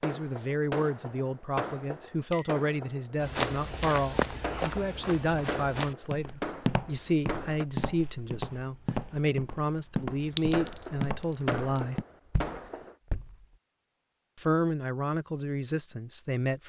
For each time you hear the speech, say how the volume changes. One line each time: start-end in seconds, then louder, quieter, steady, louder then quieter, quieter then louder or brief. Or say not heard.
0.0-12.0 steady
14.3-16.6 brief.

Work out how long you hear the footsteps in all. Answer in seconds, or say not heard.
10 s.